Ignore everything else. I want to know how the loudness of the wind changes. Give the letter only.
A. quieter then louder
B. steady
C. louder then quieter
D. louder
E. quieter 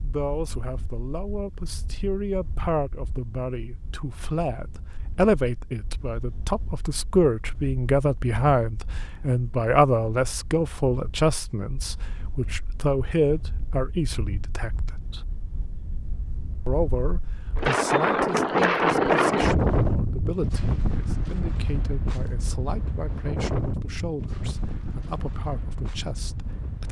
C.